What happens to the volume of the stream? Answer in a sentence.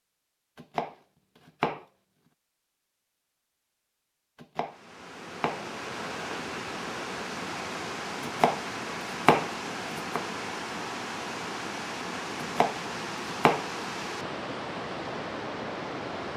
The loudness of the stream stays about the same.